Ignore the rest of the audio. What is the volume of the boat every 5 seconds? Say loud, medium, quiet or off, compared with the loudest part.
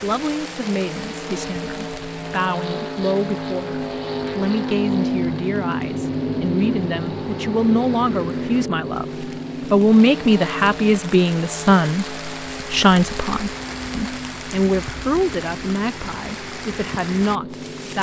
loud, loud, medium, medium.